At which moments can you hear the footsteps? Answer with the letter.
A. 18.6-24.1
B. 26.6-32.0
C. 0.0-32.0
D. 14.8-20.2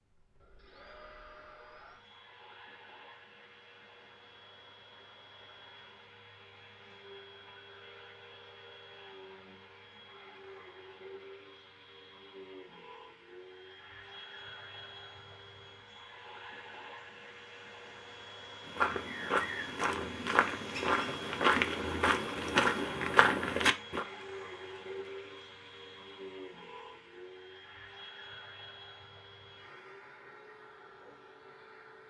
A.